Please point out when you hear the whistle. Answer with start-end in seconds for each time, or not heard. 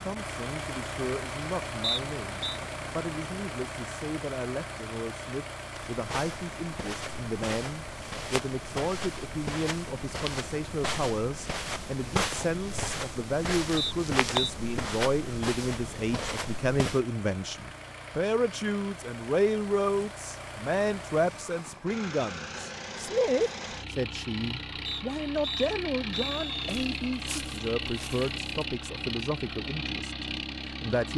1.8-2.6, 13.8-14.5, 24.9-26.8.